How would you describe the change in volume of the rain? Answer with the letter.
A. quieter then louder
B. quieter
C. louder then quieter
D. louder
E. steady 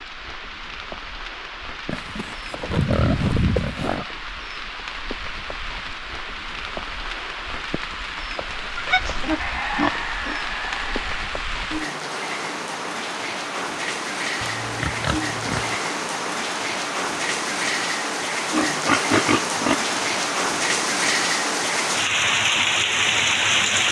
D.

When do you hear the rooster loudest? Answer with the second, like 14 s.
10 s.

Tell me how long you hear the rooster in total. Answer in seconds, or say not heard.
2 s.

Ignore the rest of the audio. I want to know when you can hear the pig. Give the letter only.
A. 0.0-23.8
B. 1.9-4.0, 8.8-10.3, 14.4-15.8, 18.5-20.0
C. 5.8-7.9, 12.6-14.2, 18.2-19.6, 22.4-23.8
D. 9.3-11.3
B.